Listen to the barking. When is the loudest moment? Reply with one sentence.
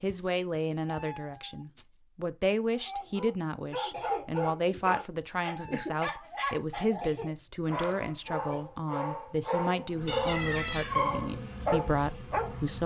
The volume of the barking peaks at 11 seconds.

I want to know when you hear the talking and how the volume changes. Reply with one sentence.
The talking can be heard from 0.0 to 12.8 s, at a steady volume.